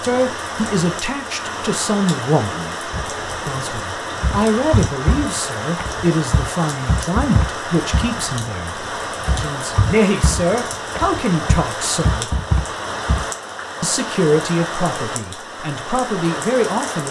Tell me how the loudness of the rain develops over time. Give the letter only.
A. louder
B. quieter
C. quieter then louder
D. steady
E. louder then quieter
D.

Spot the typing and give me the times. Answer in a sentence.
You can hear the typing from 2.9 to 13.3 s.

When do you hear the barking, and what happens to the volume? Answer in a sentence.
You can't hear the barking here.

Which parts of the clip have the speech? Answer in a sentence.
The speech can be heard from 0.0 to 12.3 s and from 13.8 to 17.0 s.